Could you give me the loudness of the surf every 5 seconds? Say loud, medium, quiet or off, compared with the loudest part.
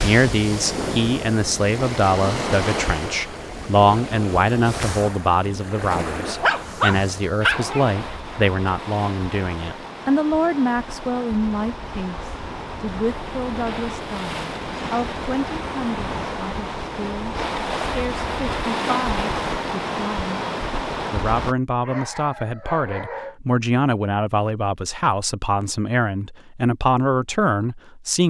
loud, medium, medium, loud, loud, off.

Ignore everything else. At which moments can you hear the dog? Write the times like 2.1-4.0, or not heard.
6.3-7.9, 21.8-23.4.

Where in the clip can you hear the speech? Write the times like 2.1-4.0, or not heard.
0.0-20.4, 21.1-28.2.